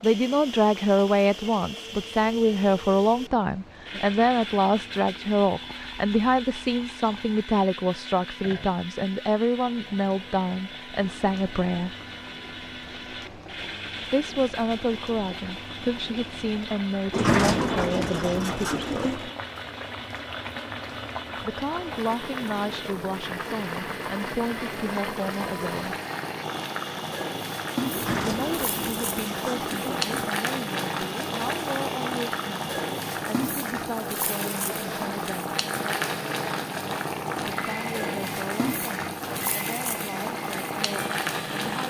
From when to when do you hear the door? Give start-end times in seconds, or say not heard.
17.1-19.3, 27.9-30.1.